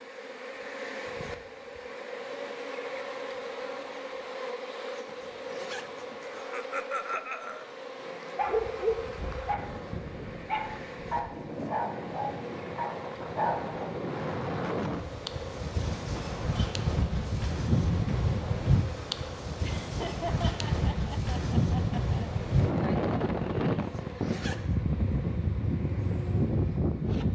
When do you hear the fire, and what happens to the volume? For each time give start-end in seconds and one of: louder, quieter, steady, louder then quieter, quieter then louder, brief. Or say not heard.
not heard.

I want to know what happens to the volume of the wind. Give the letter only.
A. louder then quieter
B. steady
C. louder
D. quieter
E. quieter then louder
C.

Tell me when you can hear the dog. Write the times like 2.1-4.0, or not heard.
7.5-13.8.